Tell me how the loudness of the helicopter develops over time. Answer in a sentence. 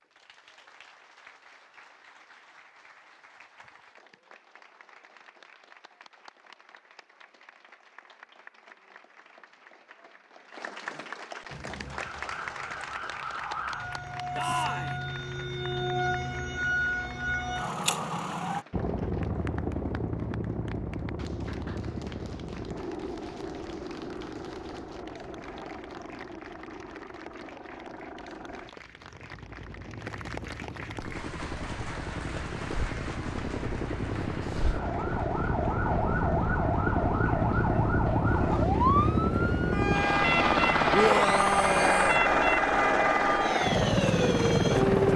The volume of the helicopter goes down, then up.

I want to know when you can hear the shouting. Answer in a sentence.
You can hear the shouting from 14.3 to 14.9 s and from 40.9 to 42.2 s.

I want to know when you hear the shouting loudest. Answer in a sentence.
The volume of the shouting peaks at 41 seconds.